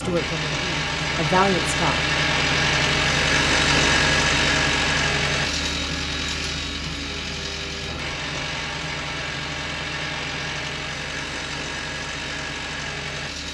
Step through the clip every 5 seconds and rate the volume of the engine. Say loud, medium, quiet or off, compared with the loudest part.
loud, medium, medium.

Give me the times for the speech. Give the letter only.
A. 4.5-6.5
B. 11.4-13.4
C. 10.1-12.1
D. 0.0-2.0
D.